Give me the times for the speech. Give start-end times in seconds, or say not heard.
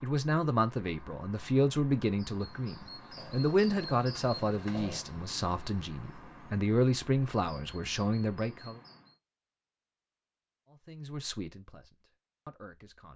0.0-8.8, 10.7-13.1.